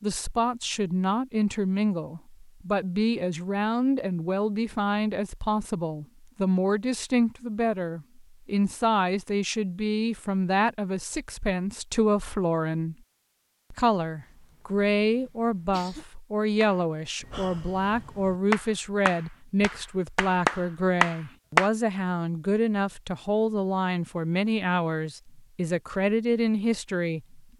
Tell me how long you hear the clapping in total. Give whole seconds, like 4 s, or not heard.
5 s.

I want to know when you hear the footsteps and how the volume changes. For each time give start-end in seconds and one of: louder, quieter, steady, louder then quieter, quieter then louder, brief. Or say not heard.
not heard.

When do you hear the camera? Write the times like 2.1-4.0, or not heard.
not heard.